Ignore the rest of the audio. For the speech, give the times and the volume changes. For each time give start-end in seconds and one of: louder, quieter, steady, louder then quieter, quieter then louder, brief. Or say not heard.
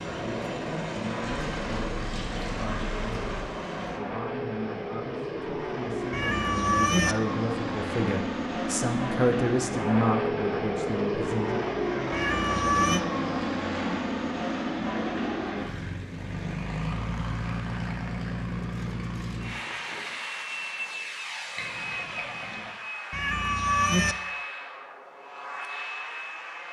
0.1-11.7 louder.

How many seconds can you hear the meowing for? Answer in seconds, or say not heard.
3 s.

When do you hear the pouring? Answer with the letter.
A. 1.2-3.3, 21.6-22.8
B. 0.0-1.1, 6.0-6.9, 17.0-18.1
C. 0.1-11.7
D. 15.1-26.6
A.